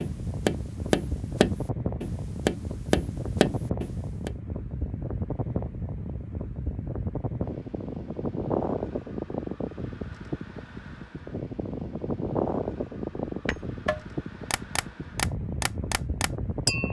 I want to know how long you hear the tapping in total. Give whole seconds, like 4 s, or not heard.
8 s.